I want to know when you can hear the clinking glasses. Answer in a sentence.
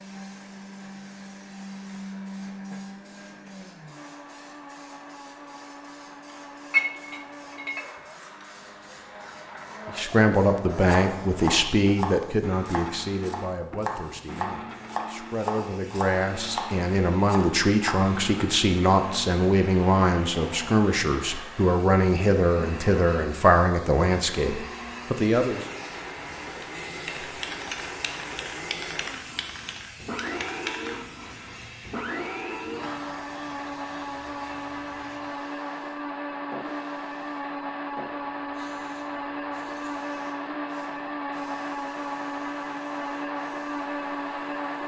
The clinking glasses can be heard from 6.7 to 7.8 s.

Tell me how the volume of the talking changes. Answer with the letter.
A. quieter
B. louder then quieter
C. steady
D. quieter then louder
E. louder
D.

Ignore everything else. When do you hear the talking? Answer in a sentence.
The talking can be heard from 9.8 to 25.6 s.